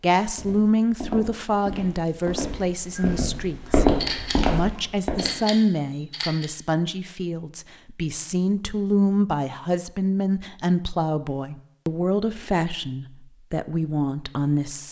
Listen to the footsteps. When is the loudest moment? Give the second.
4 s.